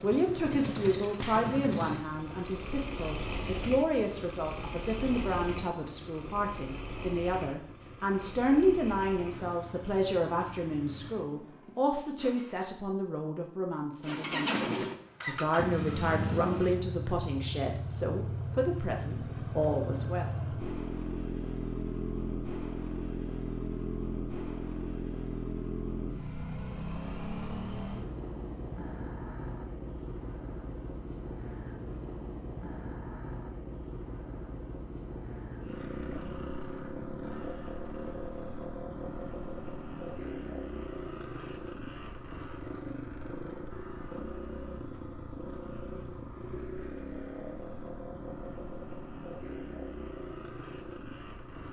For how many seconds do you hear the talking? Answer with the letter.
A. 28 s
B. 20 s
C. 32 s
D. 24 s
B.